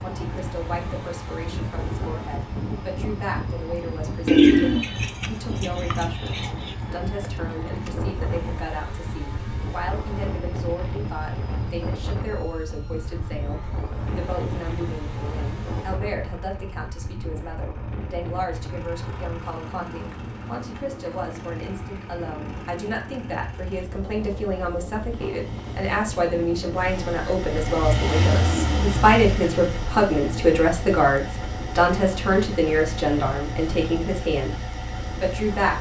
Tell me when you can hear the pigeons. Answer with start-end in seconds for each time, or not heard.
4.2-6.8.